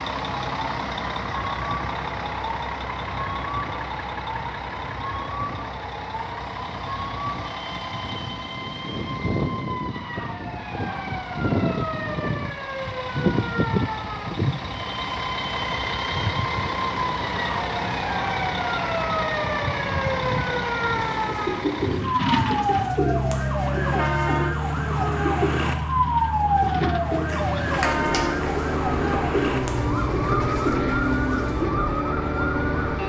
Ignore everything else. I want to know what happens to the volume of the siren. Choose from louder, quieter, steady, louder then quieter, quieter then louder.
louder.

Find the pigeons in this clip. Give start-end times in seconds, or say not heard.
20.9-31.9.